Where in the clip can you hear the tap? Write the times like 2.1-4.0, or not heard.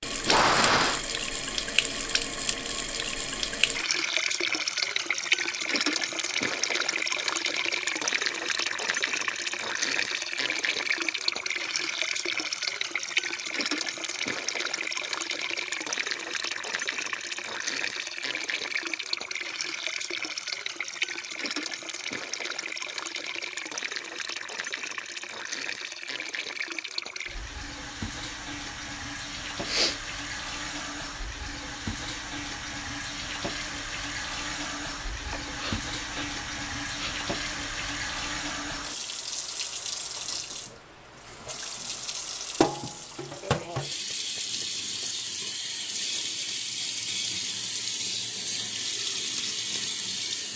0.0-50.5.